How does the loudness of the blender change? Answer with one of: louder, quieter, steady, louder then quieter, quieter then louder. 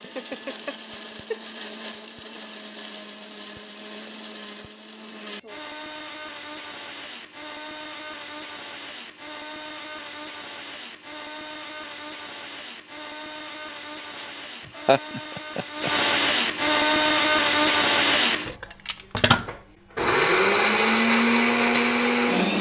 louder.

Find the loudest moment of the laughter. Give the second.
15 s.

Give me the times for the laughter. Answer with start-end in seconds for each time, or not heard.
0.0-1.4, 14.8-15.9.